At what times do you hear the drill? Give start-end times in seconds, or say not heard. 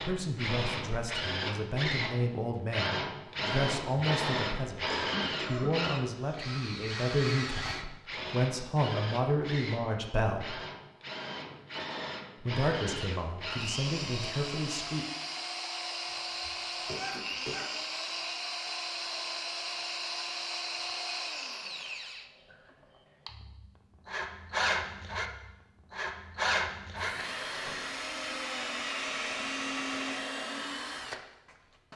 0.0-31.9.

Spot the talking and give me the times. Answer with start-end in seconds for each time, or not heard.
0.0-10.6, 12.4-15.1.